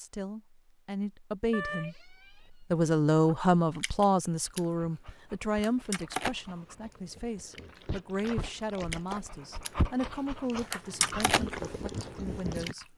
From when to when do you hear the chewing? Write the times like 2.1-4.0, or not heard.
3.2-4.6, 5.6-9.7, 10.7-12.8.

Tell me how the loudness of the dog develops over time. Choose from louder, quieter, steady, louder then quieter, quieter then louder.
louder.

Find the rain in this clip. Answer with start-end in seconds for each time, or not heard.
not heard.